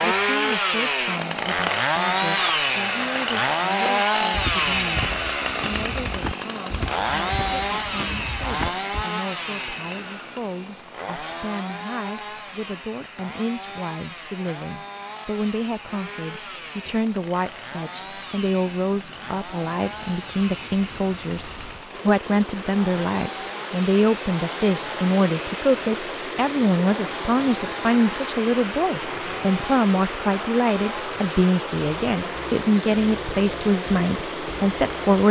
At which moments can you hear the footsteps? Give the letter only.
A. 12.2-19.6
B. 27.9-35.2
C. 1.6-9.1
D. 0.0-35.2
C.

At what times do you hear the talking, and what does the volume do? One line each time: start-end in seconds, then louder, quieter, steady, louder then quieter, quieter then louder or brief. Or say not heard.
0.0-35.2 louder.